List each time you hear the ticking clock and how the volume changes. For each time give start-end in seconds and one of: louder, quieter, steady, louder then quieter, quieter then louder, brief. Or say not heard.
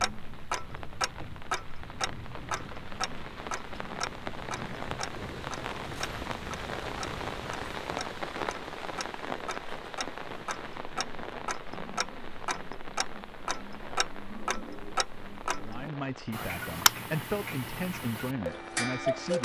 0.0-19.3 quieter then louder.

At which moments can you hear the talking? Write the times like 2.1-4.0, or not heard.
15.6-19.3.